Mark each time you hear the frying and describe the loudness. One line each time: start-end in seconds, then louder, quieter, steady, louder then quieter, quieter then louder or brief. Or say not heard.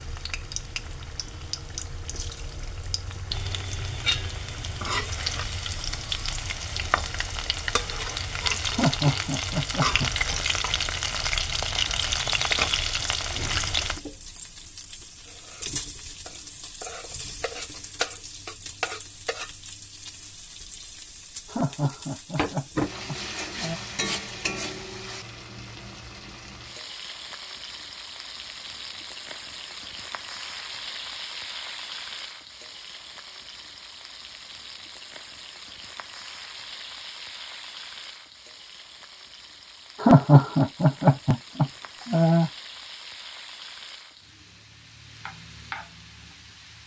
0.0-46.8 quieter.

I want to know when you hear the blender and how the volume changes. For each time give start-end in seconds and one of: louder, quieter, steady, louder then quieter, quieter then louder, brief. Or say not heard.
not heard.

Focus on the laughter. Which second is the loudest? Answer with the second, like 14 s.
40 s.